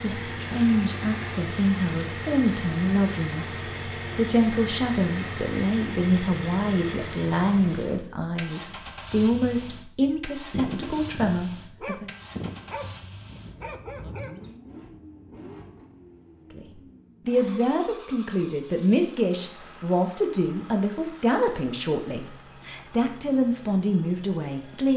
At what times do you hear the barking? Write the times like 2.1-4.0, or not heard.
10.0-14.6.